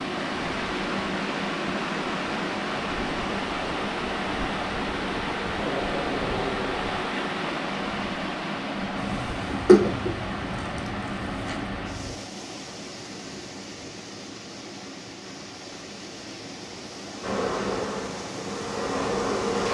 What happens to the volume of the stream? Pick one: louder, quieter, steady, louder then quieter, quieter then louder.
quieter.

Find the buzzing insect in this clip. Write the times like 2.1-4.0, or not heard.
8.9-12.2, 17.2-19.6.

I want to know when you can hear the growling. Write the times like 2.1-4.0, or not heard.
5.5-7.0.